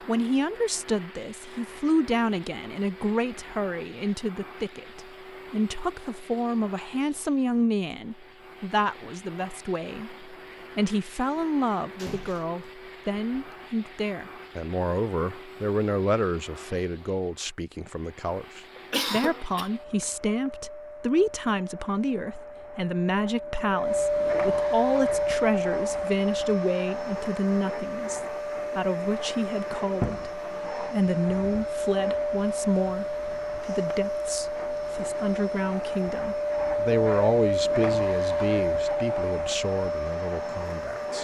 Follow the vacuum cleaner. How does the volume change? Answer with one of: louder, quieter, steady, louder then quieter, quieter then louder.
louder.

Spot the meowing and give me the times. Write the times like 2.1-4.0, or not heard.
not heard.